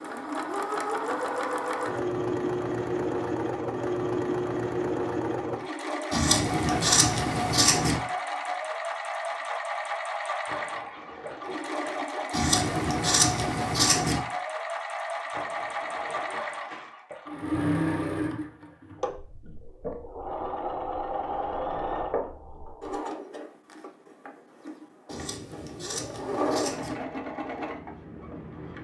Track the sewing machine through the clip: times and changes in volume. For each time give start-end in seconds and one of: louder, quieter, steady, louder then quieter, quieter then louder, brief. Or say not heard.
0.0-28.7 quieter.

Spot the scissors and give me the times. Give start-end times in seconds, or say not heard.
6.1-8.0, 12.3-14.2, 25.1-26.9.